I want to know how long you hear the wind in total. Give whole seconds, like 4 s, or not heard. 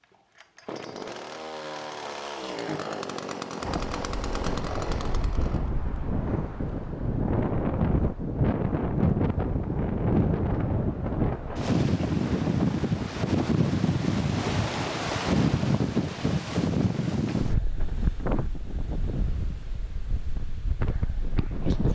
18 s.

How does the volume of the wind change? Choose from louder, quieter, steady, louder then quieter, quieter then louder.
louder then quieter.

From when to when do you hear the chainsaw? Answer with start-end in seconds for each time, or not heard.
0.0-5.7.